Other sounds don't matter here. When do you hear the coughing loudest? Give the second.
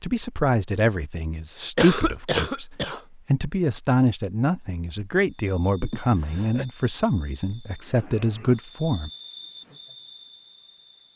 2 s.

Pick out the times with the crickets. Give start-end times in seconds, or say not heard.
5.2-11.1.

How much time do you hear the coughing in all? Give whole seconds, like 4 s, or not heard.
2 s.